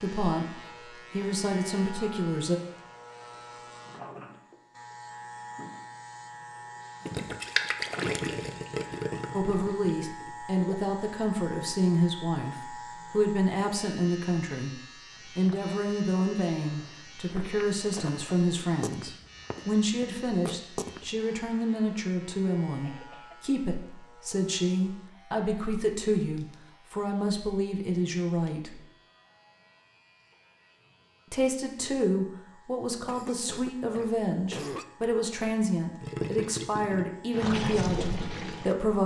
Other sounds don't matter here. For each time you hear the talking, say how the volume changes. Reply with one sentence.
You can hear the talking briefly from 0.0 to 2.6 s; from 9.3 to 28.8 s, at a steady volume; and from 31.3 to 39.0 s, at a steady volume.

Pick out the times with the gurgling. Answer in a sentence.
You can hear the gurgling from 7.0 to 10.8 s and from 36.0 to 38.8 s.